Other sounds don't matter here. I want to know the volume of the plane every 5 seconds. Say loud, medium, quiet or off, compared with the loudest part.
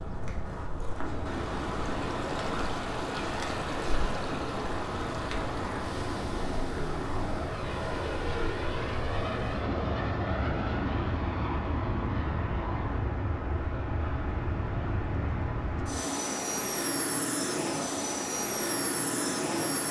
medium, loud, loud, loud.